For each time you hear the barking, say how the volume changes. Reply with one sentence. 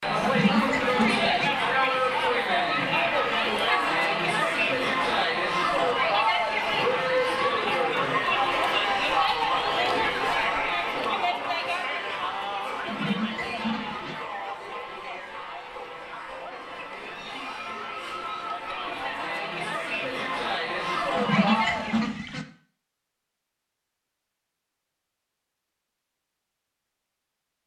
The barking can't be heard in this clip.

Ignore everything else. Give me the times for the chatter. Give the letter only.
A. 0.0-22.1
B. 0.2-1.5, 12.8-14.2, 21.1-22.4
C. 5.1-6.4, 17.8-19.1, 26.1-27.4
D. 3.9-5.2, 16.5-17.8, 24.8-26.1
A.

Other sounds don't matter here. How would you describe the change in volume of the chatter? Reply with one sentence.
The loudness of the chatter goes down, then up.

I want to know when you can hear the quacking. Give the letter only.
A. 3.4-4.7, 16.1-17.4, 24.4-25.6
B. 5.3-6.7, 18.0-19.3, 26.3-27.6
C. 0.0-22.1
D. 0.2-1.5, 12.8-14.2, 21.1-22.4
D.